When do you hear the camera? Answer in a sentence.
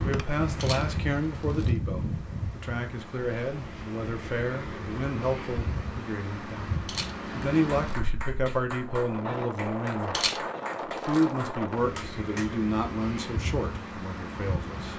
The camera can be heard from 0.6 to 1.7 s, from 6.8 to 8.0 s and from 10.1 to 11.2 s.